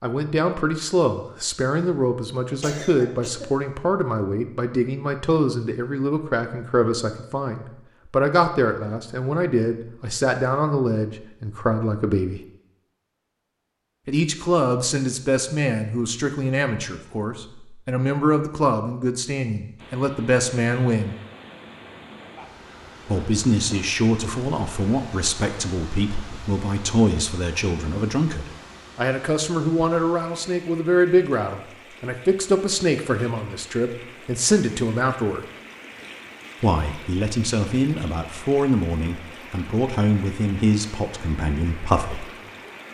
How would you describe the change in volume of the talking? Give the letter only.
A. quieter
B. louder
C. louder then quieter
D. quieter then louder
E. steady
E.